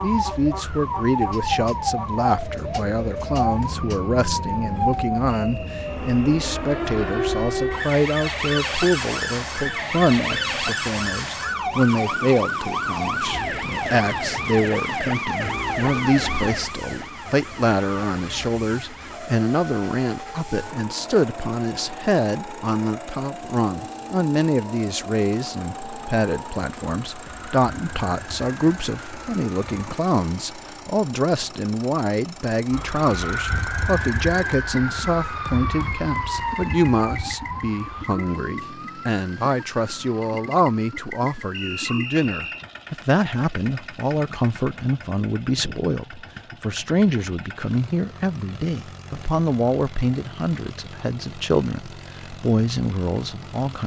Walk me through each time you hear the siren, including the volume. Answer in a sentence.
You can hear the siren from 0.0 to 29.9 s, getting quieter; and from 32.7 to 42.0 s, getting quieter.